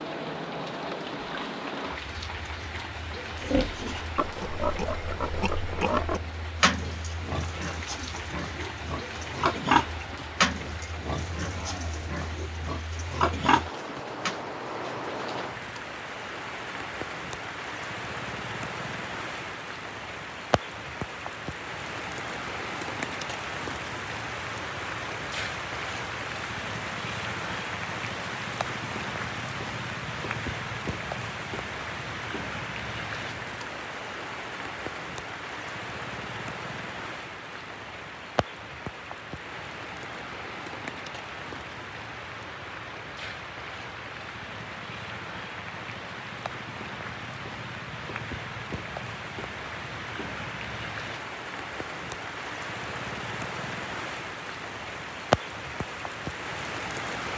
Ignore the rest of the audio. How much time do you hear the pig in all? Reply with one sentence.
The pig can be heard for 11 seconds in total.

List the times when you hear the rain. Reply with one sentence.
You can hear the rain from 0.0 to 57.3 s.